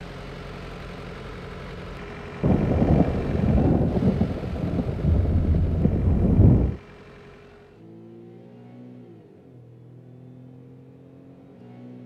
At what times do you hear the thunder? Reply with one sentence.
You can hear the thunder from 2.4 to 6.8 s.